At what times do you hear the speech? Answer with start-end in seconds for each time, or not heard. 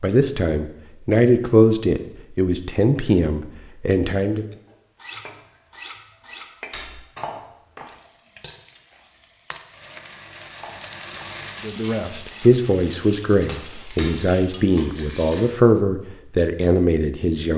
0.0-4.5, 11.6-17.5.